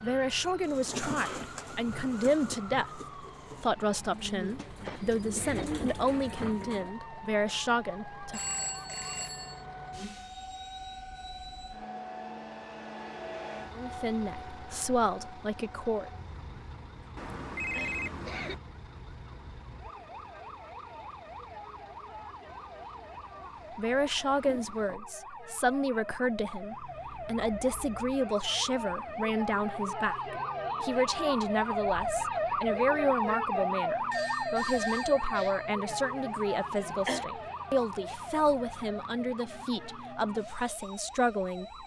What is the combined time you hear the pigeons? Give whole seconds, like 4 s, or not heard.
6 s.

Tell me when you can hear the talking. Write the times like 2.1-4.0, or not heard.
0.0-3.0, 3.6-8.4, 13.8-16.1, 23.8-41.8.